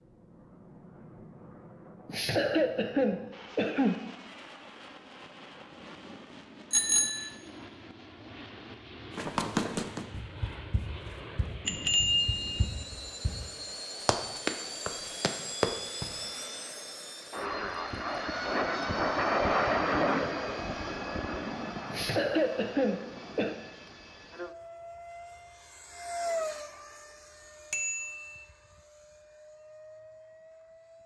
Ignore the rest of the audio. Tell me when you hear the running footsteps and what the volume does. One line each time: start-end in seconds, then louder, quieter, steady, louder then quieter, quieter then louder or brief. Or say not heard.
9.2-16.3 quieter then louder.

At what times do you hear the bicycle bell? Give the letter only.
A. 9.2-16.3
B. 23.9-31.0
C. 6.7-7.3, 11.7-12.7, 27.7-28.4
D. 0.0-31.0
C.